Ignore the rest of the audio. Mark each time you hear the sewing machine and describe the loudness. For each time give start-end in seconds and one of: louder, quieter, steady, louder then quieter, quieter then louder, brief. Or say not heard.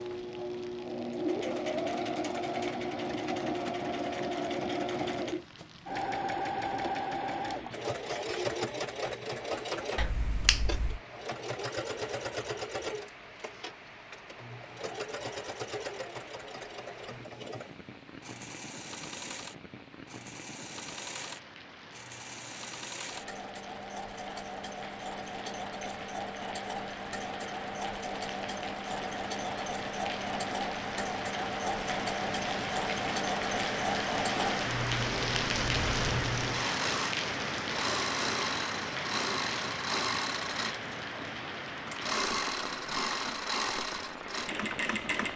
0.0-45.3 quieter then louder.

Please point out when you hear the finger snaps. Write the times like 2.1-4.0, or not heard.
9.9-11.0.